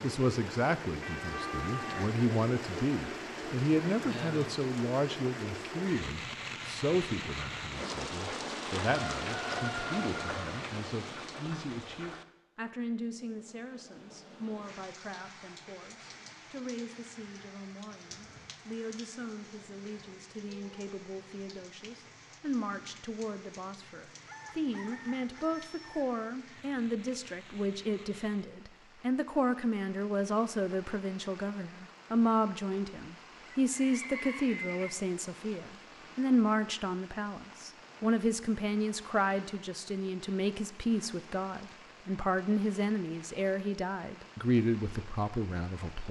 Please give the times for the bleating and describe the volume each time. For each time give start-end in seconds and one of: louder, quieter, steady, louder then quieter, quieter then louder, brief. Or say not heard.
not heard.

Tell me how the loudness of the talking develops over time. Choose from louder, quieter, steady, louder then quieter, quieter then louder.
quieter then louder.